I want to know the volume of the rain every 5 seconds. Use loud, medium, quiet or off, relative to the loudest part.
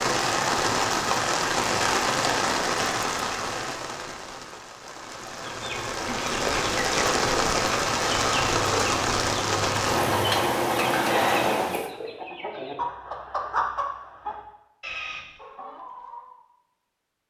loud, loud, loud, off.